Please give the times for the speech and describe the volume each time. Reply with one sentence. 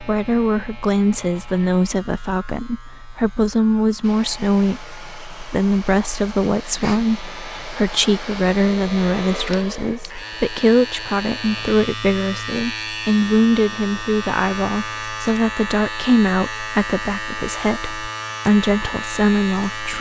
The speech can be heard from 0.0 to 19.9 s, at a steady volume.